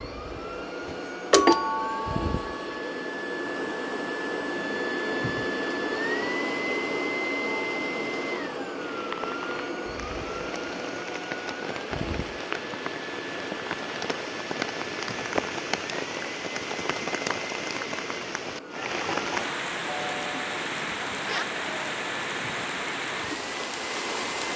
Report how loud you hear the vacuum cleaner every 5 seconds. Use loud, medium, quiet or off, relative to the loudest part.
loud, loud, medium, medium, medium.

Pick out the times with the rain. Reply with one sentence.
The rain can be heard from 8.8 to 24.5 s.